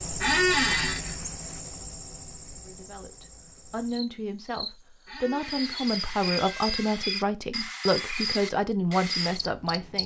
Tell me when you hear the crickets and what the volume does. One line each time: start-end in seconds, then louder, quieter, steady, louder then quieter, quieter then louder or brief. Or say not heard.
0.0-10.0 quieter then louder.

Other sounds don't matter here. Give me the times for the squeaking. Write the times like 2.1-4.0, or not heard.
0.2-1.1, 5.0-7.0.